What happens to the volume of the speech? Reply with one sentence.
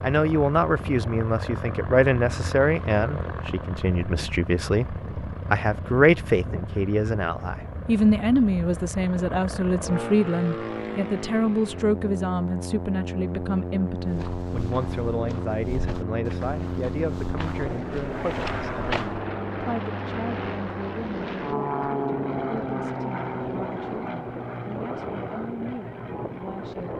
The volume of the speech goes down.